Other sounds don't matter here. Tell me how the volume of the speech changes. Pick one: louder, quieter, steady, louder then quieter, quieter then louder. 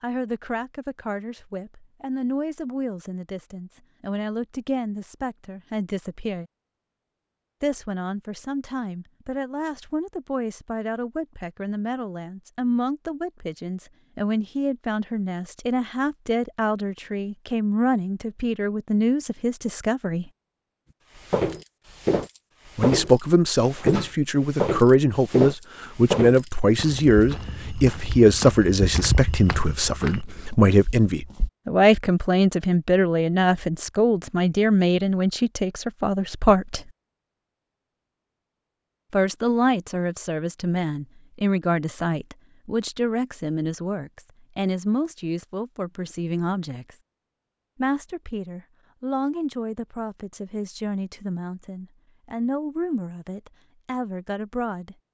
louder then quieter.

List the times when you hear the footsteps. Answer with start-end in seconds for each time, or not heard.
21.1-31.5.